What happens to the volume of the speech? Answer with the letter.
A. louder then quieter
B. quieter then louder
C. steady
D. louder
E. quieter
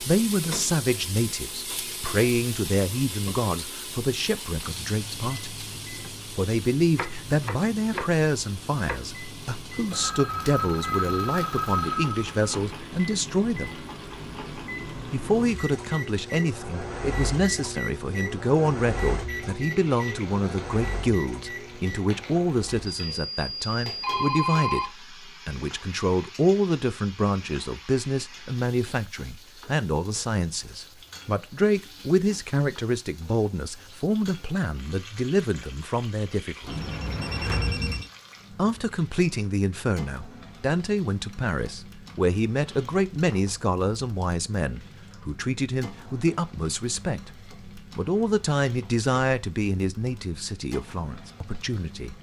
C.